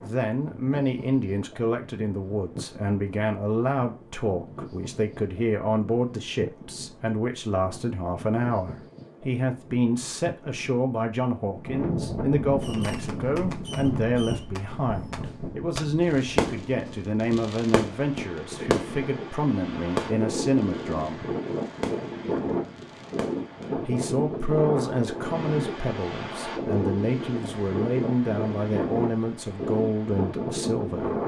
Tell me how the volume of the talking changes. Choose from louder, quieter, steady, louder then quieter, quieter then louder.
steady.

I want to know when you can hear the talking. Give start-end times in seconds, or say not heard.
0.0-21.3, 23.8-31.1.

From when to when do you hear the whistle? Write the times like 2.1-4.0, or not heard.
not heard.